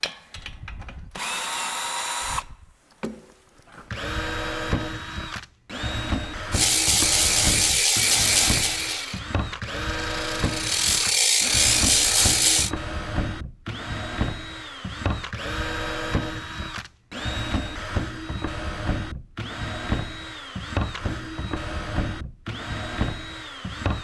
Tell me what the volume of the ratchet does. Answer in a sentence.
The loudness of the ratchet goes down, then up.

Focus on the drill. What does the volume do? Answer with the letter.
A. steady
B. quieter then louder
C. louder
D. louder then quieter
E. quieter
A.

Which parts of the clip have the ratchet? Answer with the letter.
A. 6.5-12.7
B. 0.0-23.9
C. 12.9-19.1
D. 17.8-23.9
A.